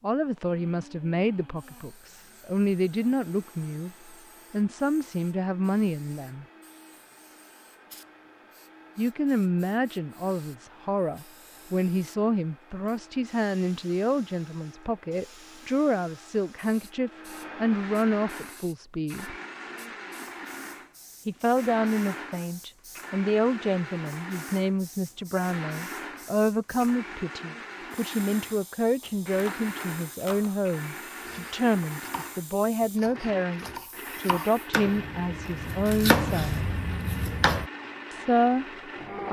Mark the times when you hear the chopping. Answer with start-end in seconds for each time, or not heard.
29.0-37.6.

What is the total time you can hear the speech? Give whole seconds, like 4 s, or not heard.
33 s.